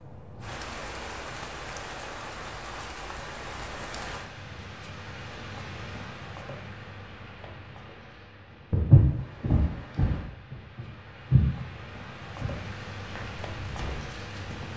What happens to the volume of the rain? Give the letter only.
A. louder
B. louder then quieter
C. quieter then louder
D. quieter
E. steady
C.